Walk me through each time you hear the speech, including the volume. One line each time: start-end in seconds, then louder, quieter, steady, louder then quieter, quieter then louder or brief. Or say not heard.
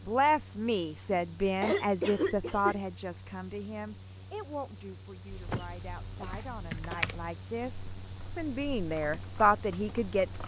0.1-10.4 quieter then louder.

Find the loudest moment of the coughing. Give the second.
2 s.